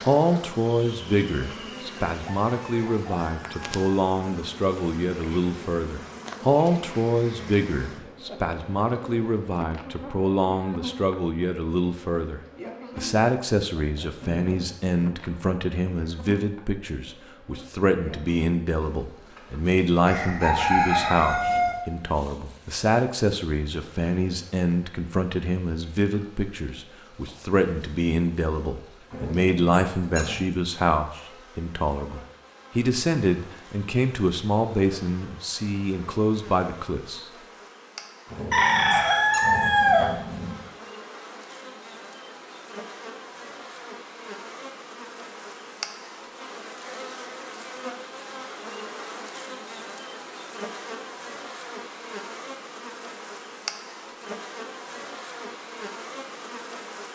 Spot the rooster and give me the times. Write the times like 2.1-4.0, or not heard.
2.1-4.0, 20.1-21.8, 38.5-40.1.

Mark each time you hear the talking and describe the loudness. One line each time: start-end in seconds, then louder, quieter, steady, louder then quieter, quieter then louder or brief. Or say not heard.
0.0-37.2 steady.